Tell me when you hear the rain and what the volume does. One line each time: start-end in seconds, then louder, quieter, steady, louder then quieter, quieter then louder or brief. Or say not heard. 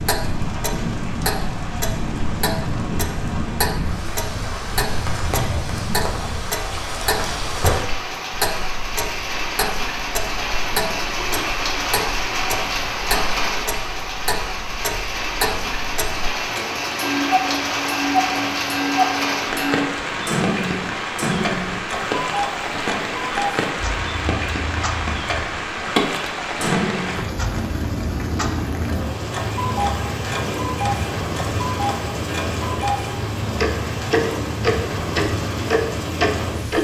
0.0-36.7 steady.